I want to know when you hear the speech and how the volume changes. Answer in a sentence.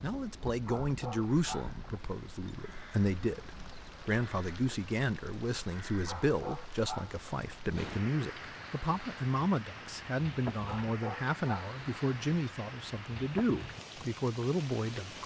You can hear the speech from 0.0 to 15.2 s, at a steady volume.